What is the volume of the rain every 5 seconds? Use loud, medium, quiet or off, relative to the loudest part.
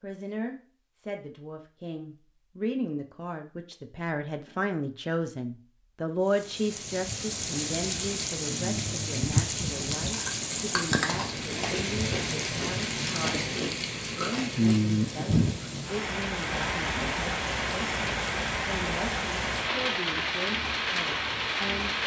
off, loud, loud, loud, loud.